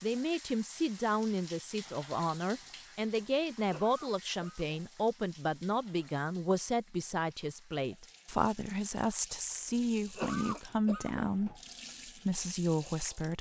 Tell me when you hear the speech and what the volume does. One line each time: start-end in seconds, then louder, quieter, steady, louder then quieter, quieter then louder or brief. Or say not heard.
0.0-13.3 steady.